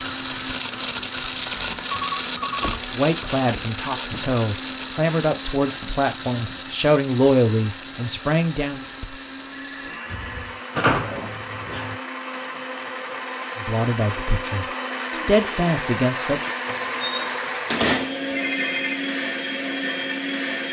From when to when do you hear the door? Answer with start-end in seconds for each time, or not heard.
2.6-4.3, 10.8-11.9, 16.6-18.2.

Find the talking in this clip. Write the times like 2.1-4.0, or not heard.
2.9-8.8, 13.6-16.5.